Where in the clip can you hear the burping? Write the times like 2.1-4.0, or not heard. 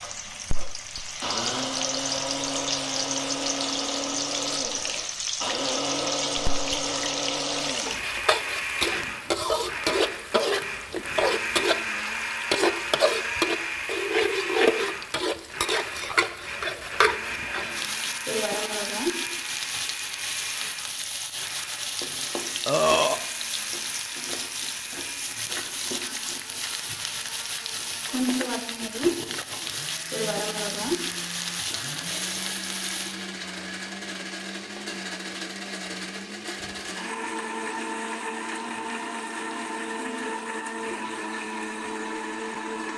22.6-23.2.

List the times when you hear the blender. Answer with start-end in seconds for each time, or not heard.
0.0-42.9.